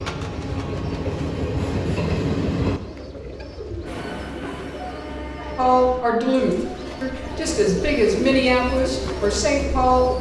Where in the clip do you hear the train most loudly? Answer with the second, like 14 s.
2 s.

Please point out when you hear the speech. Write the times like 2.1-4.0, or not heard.
5.5-10.1.